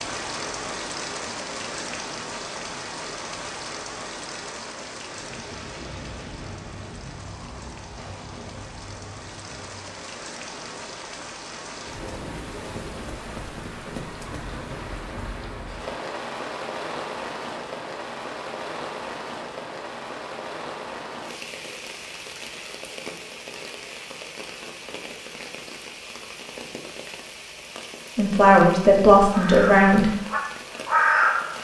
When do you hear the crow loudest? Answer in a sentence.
The volume of the crow peaks at 31 seconds.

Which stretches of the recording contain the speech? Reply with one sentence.
The speech can be heard from 28.1 to 30.1 s.